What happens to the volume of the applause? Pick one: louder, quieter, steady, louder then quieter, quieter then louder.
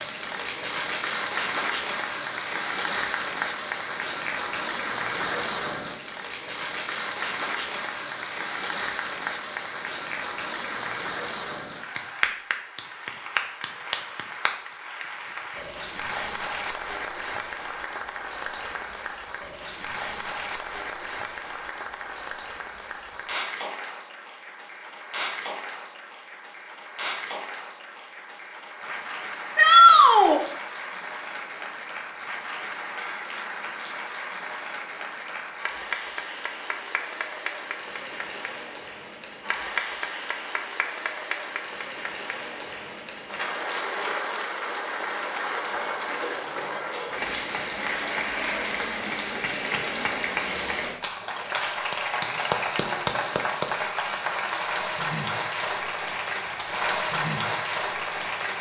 quieter then louder.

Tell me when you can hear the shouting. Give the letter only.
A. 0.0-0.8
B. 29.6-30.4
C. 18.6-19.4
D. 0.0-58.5
B.